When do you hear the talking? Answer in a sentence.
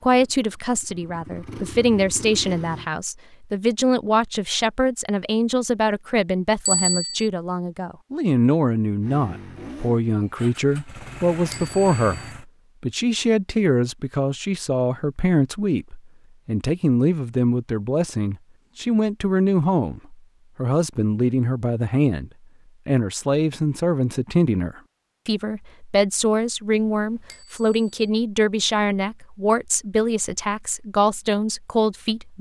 The talking can be heard from 0.0 to 32.3 s.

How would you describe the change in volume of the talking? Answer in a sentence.
The volume of the talking stays about the same.